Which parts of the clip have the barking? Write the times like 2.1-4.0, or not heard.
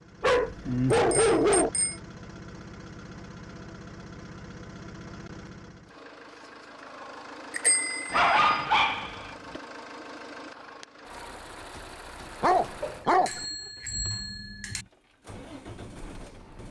0.2-1.7, 8.1-9.6, 12.4-13.4.